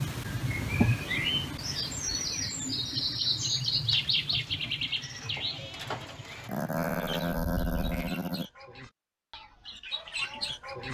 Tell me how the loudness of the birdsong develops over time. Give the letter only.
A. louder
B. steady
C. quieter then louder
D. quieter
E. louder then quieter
C.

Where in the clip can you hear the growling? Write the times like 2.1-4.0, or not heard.
6.5-8.5.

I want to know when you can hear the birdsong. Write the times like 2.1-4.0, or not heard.
0.0-10.8.